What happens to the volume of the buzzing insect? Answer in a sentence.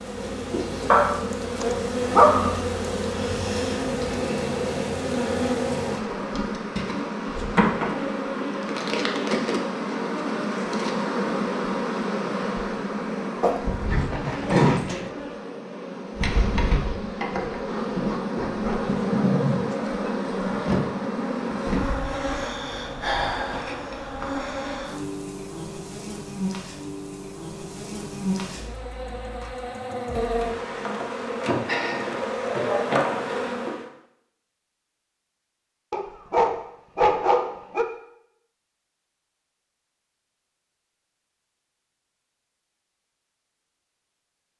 The loudness of the buzzing insect stays about the same.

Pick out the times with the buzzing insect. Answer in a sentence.
You can hear the buzzing insect from 0.0 to 33.9 s.